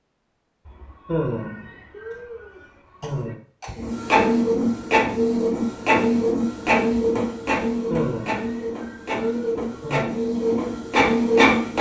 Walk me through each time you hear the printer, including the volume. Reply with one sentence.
The printer can be heard from 3.8 to 11.7 s, getting quieter then louder.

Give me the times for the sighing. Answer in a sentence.
You can hear the sighing from 0.7 to 3.4 s and from 7.7 to 10.2 s.